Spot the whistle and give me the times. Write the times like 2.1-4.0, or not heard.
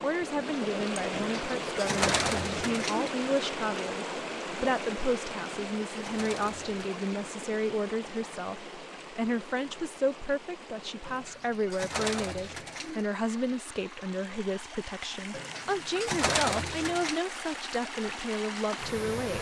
not heard.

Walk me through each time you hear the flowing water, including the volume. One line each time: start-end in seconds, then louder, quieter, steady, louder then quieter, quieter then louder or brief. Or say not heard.
0.0-19.3 quieter then louder.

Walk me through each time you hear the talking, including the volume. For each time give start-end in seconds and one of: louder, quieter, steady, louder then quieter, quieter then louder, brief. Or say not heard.
0.0-19.3 steady.